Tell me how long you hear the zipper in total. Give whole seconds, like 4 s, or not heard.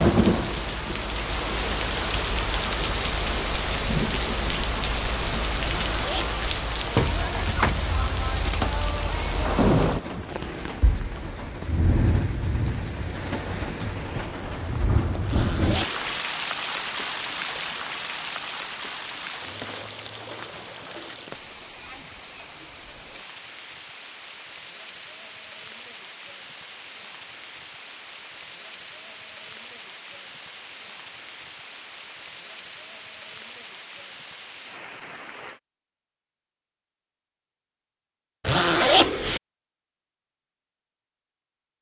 3 s.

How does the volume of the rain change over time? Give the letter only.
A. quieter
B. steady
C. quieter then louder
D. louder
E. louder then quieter
A.